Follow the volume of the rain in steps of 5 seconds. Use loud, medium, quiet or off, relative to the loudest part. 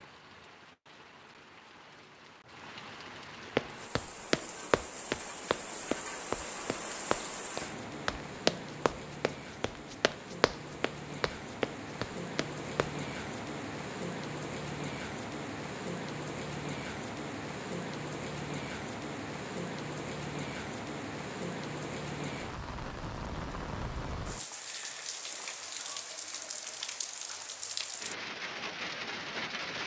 medium, loud, loud, loud, loud, loud.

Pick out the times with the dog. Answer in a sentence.
The dog can't be heard in this clip.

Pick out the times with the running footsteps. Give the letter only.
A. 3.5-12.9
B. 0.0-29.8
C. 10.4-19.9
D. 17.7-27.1
A.